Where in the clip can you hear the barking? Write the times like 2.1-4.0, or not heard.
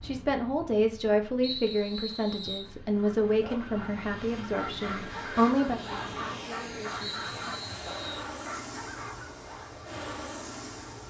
3.0-9.8.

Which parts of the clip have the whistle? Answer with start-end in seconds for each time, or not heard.
1.4-2.7, 7.0-8.3.